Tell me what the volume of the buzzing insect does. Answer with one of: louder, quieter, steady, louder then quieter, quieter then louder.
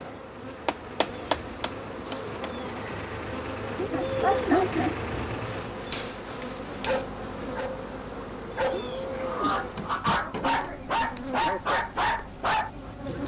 steady.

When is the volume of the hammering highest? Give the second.
1 s.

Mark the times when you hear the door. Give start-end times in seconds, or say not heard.
not heard.